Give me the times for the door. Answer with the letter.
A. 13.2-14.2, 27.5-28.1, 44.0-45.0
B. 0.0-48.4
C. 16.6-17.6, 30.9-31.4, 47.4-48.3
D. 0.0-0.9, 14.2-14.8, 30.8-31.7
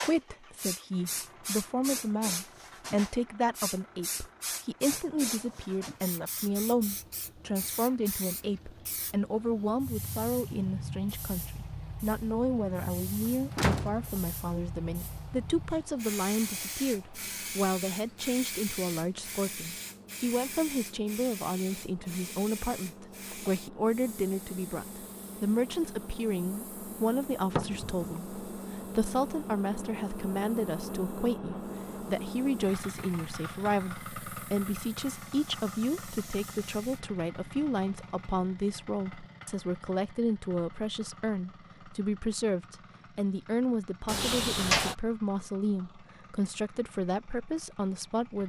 A.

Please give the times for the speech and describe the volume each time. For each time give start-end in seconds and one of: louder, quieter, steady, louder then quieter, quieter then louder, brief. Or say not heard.
0.0-48.4 steady.